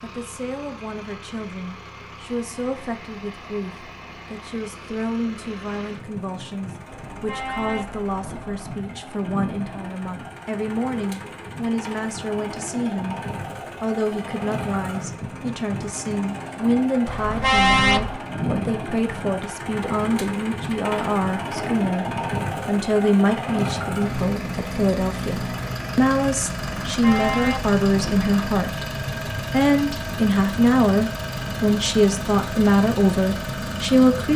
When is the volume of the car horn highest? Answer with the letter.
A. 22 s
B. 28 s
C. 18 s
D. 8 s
C.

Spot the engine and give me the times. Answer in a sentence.
You can hear the engine from 0.0 to 34.3 s.